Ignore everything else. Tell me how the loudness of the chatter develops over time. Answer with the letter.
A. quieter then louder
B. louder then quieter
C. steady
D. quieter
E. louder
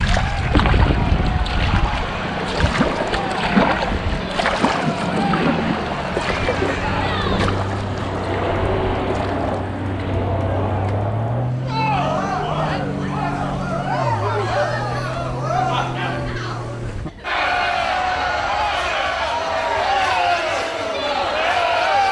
E.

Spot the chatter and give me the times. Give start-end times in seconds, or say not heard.
0.1-22.0.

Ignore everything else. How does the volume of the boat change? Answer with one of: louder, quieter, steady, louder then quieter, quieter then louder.
quieter.